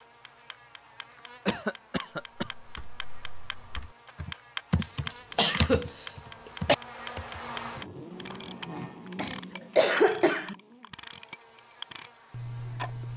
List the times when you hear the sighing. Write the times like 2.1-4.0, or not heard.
not heard.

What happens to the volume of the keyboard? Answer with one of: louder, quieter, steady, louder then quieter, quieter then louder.
louder then quieter.